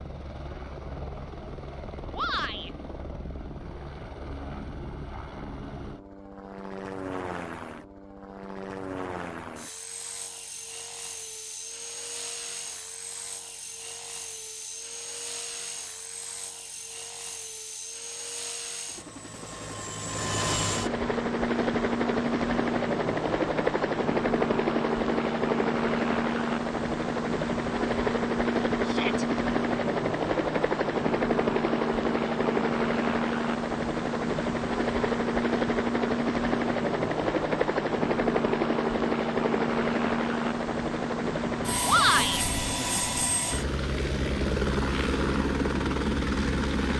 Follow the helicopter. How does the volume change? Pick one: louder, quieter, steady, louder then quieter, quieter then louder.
louder.